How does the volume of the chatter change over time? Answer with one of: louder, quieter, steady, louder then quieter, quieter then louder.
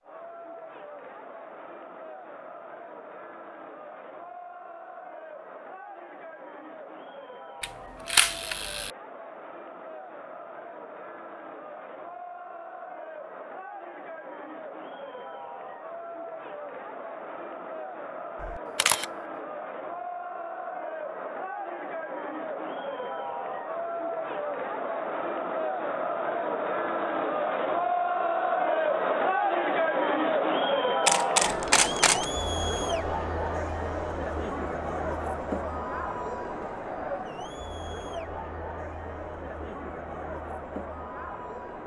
louder then quieter.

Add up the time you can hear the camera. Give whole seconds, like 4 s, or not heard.
3 s.